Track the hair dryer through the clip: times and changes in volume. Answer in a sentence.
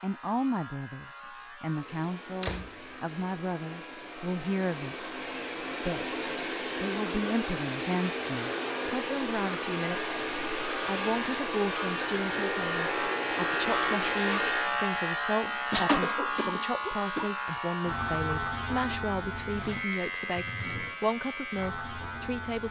You can hear the hair dryer from 1.6 to 14.8 s, getting louder.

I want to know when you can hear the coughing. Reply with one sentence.
The coughing can be heard from 15.4 to 17.3 s.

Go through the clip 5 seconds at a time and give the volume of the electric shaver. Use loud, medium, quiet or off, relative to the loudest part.
quiet, medium, loud, loud, medium.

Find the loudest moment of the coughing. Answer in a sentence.
The loudest moment of the coughing is at 16 seconds.